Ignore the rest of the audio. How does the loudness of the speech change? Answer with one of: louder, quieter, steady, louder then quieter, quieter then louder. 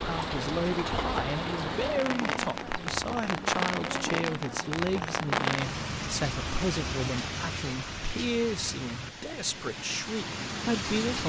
steady.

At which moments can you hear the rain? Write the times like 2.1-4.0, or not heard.
0.0-11.2.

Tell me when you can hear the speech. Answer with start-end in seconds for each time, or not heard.
0.0-11.2.